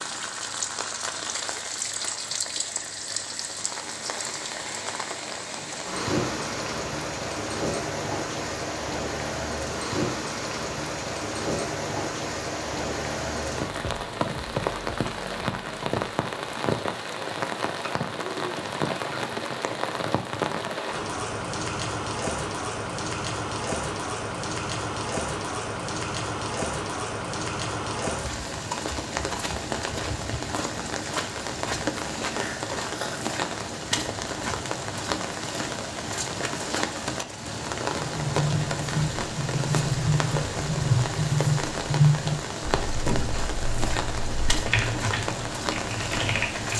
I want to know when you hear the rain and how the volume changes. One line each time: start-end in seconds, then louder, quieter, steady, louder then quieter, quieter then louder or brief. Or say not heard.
0.0-46.7 steady.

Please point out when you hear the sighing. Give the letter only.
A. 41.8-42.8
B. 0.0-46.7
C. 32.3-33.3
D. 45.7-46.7
C.